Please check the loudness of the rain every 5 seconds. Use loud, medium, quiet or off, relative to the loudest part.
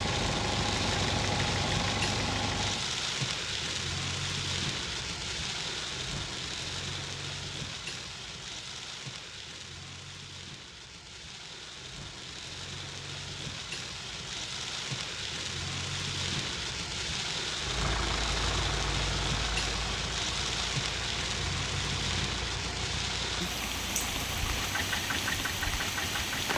loud, medium, medium, loud, loud, loud.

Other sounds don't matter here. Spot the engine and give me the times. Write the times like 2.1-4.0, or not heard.
0.0-2.9, 17.6-26.5.